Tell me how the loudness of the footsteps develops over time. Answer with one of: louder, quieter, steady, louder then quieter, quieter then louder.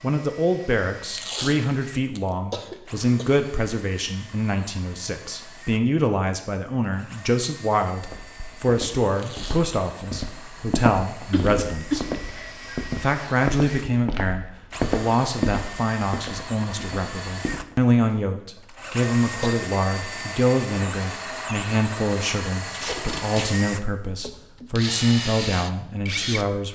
louder then quieter.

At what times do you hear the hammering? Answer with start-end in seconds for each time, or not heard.
not heard.